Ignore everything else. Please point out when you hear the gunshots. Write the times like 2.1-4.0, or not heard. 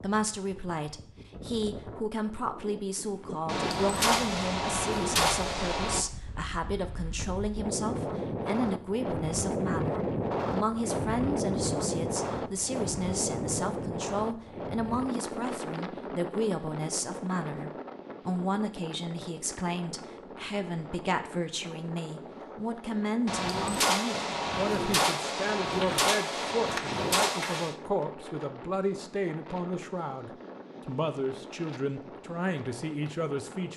3.5-6.0, 23.2-27.8.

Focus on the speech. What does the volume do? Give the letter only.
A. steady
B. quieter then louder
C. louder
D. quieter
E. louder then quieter
A.